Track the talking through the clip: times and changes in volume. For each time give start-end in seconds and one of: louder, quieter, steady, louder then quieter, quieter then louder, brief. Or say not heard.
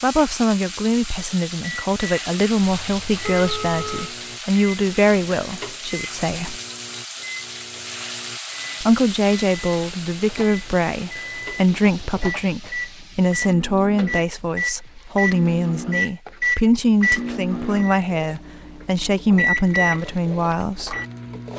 0.0-6.5 steady
8.8-20.9 steady.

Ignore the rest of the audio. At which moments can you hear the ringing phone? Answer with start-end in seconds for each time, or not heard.
2.6-4.2.